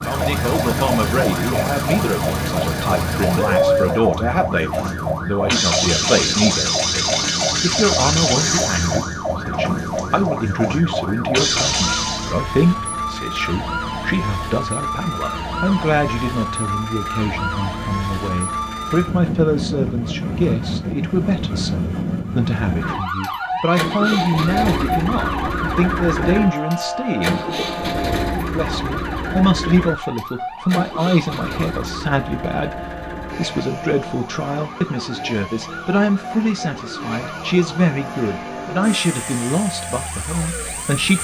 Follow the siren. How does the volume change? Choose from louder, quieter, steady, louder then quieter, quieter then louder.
quieter.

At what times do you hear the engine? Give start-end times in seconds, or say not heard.
0.0-12.3, 22.6-41.1.